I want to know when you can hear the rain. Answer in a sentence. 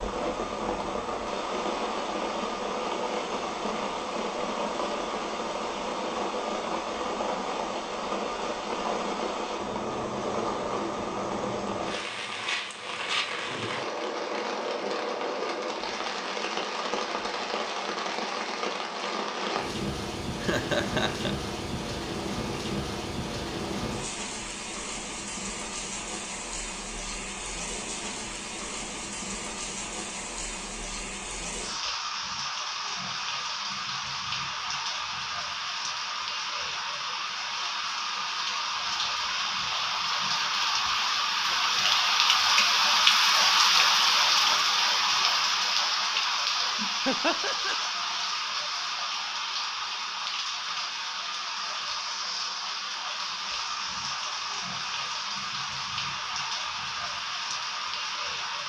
You can hear the rain from 0.0 to 58.6 s.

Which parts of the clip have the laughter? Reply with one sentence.
The laughter can be heard from 20.4 to 21.3 s and from 47.0 to 47.8 s.